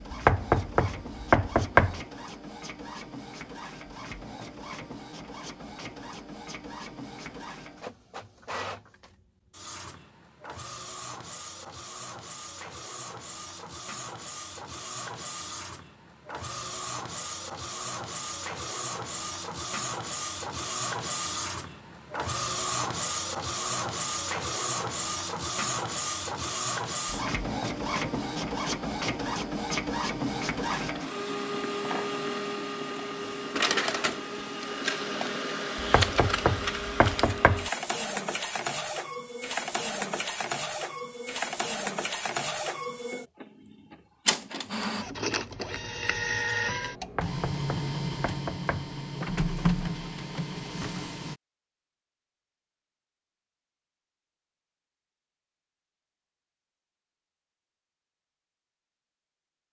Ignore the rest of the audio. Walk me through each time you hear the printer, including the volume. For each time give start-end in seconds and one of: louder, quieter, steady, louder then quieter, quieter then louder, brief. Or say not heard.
0.0-51.4 louder.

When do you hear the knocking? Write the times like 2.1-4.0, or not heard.
0.1-2.0, 35.8-37.7, 47.0-48.9.